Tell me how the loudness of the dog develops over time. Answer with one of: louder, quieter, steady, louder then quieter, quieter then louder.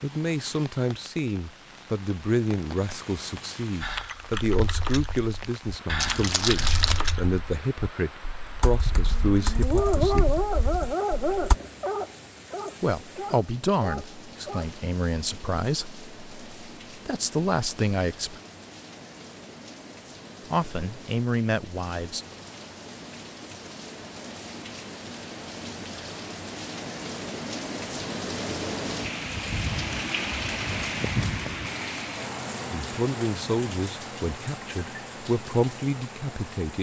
quieter.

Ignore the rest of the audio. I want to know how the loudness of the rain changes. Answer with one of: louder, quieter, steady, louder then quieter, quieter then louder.
louder.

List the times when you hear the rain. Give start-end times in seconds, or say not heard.
0.0-36.7.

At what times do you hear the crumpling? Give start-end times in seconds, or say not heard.
6.0-7.1.